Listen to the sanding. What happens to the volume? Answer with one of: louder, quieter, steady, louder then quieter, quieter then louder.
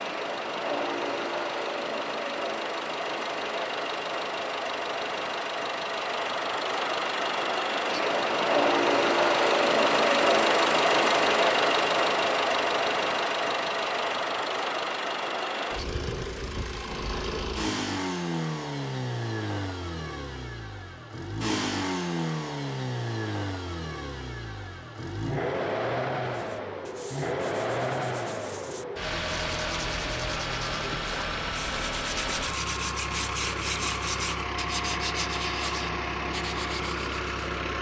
louder.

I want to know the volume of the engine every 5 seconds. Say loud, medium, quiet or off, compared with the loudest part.
medium, loud, loud, medium, medium, medium, medium, medium.